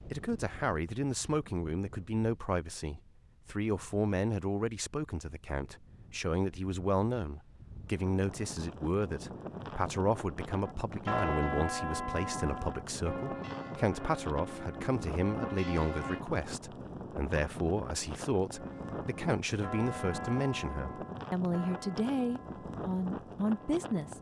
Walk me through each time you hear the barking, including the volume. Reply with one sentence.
The barking can't be heard in this clip.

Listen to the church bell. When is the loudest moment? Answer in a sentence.
The loudest moment of the church bell is at 11 seconds.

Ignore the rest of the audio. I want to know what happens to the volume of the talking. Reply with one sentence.
The loudness of the talking stays about the same.